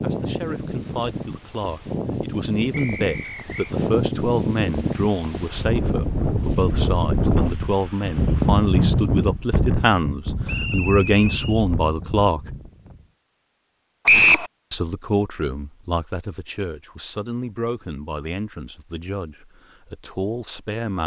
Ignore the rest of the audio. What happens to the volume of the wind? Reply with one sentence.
The loudness of the wind goes up, then down.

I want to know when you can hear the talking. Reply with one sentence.
The talking can be heard from 0.0 to 12.6 s and from 14.7 to 21.0 s.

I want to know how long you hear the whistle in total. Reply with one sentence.
You can hear the whistle for 3 seconds altogether.